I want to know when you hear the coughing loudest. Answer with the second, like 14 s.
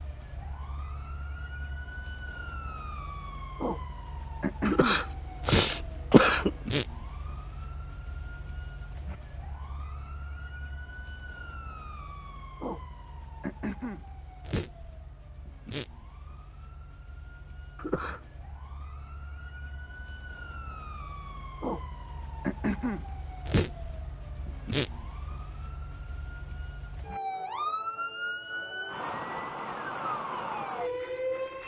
6 s.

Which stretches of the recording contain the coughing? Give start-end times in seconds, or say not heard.
4.7-6.5, 17.8-18.2.